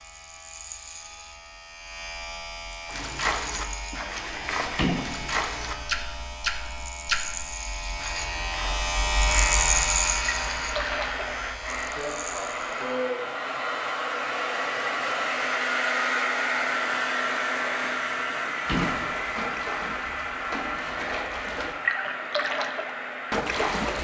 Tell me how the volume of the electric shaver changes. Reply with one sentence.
The volume of the electric shaver goes up, then down.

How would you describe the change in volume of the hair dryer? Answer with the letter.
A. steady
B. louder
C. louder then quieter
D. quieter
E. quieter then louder
C.